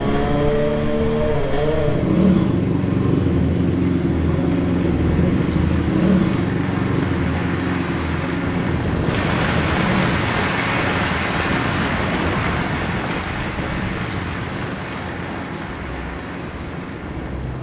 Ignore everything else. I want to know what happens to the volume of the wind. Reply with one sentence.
The loudness of the wind goes down.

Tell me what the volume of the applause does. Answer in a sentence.
The loudness of the applause goes up, then down.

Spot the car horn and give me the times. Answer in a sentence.
The car horn can't be heard in this clip.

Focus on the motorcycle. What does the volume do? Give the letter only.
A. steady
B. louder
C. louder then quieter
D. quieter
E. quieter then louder
D.